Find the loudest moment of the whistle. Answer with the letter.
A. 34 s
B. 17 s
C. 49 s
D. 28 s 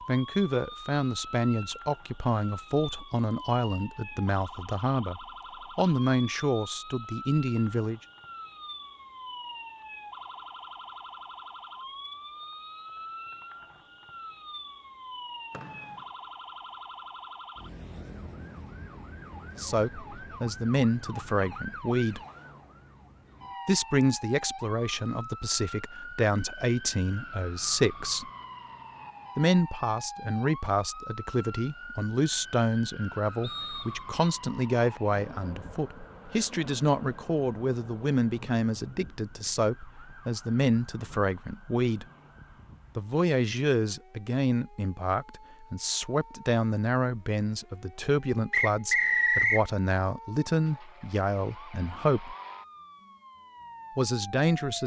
C.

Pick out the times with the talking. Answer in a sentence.
You can hear the talking from 0.1 to 8.0 s, from 19.6 to 22.2 s, from 23.6 to 28.2 s, from 29.4 to 42.0 s, from 43.0 to 52.4 s and from 54.0 to 54.8 s.